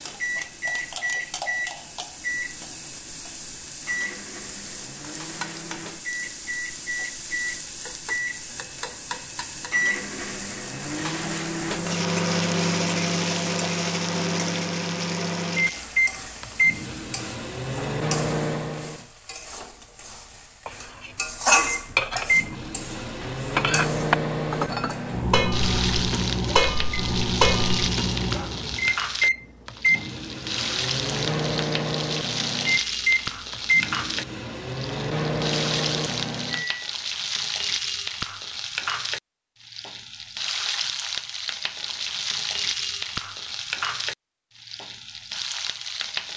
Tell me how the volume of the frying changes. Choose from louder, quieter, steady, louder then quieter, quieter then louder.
louder.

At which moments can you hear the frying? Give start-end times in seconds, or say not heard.
0.0-46.3.